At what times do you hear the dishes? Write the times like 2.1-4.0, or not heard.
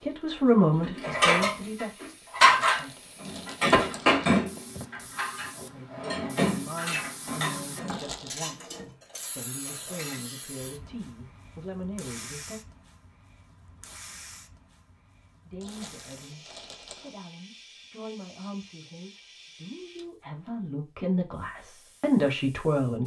0.8-10.2.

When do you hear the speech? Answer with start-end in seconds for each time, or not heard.
0.0-3.0, 5.7-12.6, 15.4-23.0.